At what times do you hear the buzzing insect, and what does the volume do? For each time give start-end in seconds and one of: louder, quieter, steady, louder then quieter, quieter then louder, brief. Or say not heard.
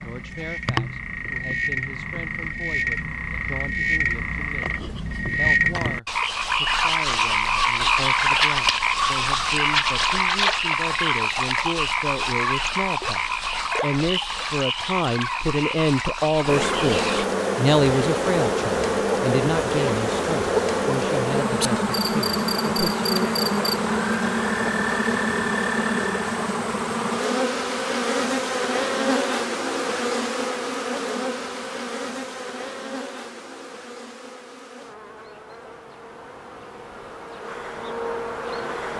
16.4-38.9 quieter.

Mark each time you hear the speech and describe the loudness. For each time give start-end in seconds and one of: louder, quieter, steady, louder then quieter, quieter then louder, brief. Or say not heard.
0.0-23.4 louder then quieter.